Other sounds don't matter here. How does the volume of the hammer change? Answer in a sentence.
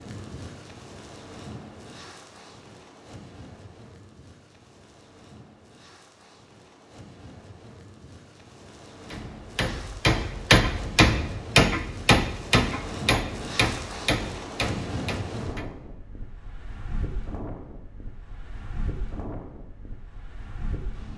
The loudness of the hammer goes down.